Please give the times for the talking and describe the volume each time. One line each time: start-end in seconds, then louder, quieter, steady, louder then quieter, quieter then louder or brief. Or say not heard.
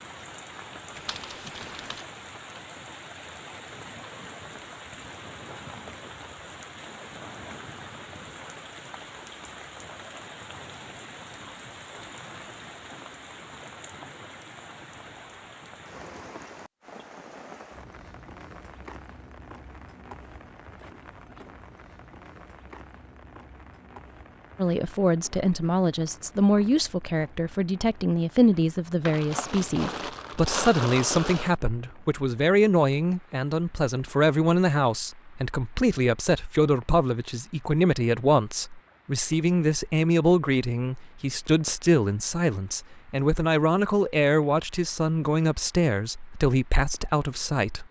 24.6-47.8 steady.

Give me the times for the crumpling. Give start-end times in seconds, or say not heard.
0.9-2.1, 29.1-31.6.